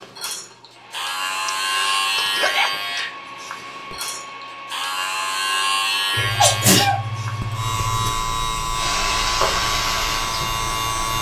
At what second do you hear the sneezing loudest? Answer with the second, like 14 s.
7 s.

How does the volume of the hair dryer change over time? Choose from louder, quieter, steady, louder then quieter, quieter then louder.
louder.